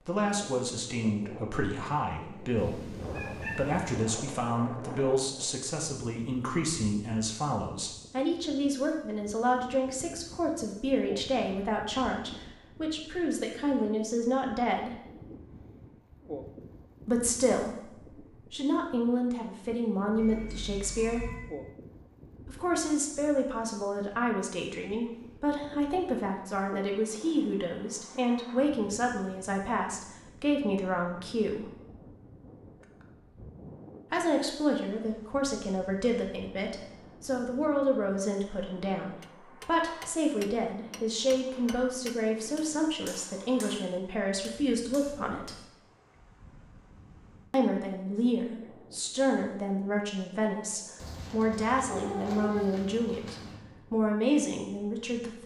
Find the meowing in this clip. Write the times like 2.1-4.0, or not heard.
2.5-4.0, 20.1-21.5, 51.0-53.6.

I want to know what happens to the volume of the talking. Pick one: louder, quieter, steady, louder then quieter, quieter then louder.
steady.